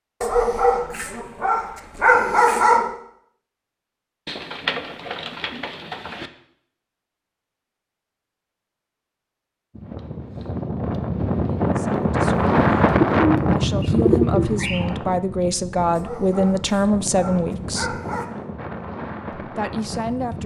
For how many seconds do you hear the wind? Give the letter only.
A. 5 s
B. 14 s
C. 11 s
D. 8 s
C.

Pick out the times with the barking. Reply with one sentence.
The barking can be heard from 0.2 to 2.9 s and from 15.9 to 18.2 s.